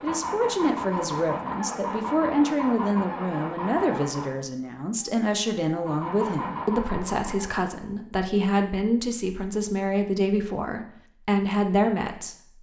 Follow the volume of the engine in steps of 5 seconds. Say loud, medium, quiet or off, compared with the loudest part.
loud, loud, off.